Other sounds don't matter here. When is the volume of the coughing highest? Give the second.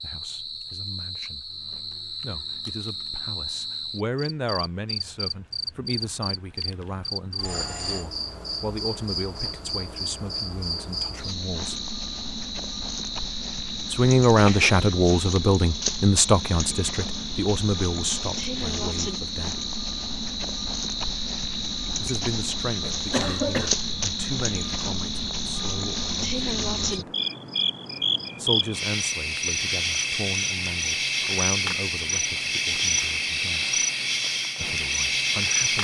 23 s.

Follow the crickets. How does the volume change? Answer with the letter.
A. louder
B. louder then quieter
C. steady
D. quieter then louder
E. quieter
A.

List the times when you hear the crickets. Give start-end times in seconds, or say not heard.
0.0-35.7.